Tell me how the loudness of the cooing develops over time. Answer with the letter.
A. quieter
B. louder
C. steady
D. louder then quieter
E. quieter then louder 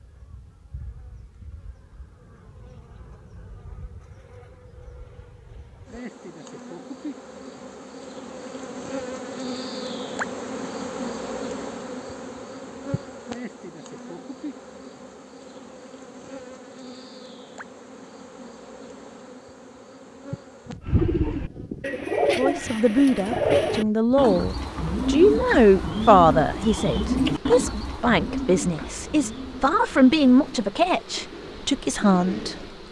A.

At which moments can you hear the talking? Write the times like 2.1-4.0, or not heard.
22.4-32.5.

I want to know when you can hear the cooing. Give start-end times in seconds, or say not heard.
20.8-32.8.